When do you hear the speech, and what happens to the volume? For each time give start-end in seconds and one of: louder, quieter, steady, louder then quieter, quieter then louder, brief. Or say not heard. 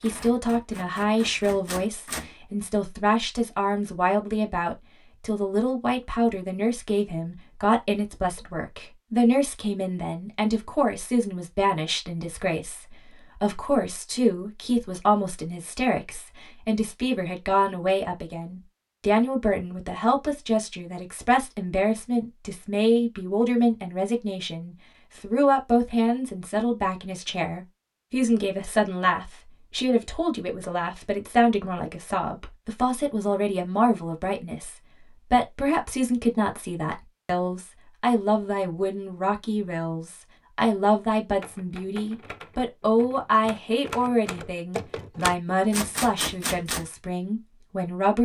0.0-48.2 steady.